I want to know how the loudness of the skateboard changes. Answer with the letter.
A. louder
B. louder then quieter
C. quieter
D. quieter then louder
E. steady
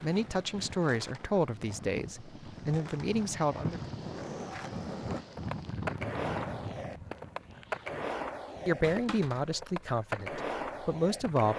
A.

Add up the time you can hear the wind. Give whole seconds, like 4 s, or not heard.
8 s.